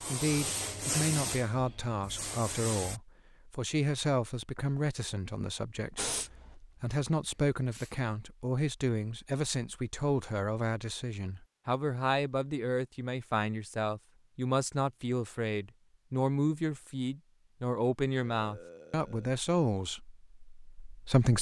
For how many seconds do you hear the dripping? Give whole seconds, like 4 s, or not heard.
not heard.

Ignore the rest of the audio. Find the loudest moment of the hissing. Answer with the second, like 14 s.
1 s.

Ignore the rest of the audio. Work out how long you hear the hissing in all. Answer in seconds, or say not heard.
5 s.